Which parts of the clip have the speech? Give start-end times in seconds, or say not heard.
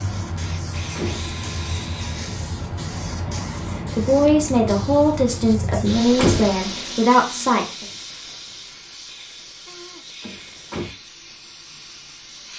3.5-7.8.